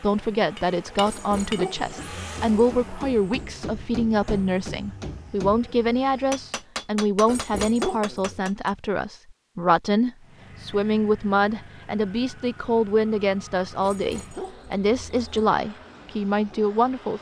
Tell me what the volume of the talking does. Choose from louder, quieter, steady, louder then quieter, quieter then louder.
steady.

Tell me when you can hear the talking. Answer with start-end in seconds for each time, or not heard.
0.0-17.1.